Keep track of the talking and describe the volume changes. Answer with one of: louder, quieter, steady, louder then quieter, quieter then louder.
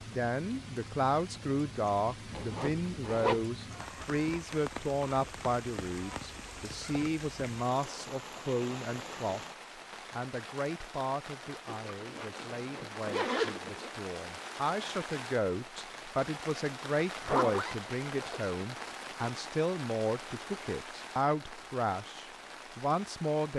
quieter then louder.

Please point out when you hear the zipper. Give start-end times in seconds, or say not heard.
2.3-3.5, 11.7-13.9, 17.2-18.6.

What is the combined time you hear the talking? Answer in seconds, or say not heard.
23 s.